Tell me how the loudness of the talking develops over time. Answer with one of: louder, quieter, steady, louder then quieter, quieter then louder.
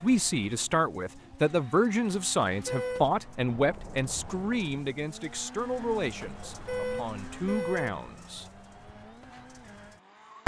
quieter.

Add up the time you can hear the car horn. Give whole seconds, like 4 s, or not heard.
2 s.